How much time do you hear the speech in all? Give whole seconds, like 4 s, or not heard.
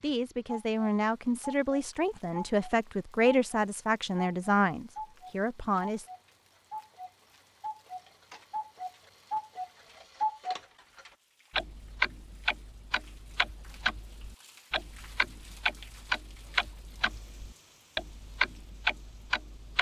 6 s.